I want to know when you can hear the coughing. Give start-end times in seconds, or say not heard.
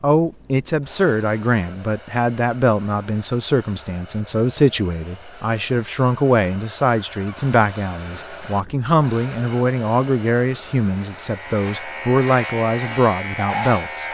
not heard.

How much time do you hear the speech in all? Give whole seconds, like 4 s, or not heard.
14 s.